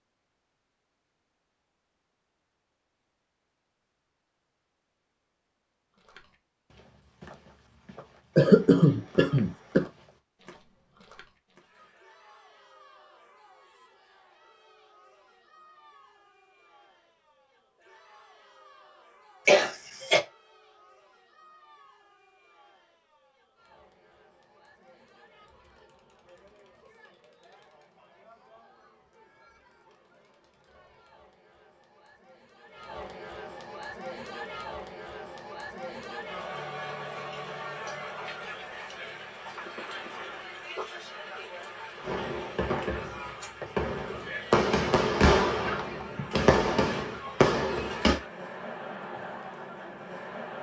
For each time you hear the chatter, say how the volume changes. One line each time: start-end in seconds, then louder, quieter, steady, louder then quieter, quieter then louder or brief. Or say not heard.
11.6-50.5 louder.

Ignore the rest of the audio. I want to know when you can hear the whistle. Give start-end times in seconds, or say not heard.
not heard.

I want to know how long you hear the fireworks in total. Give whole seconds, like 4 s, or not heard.
6 s.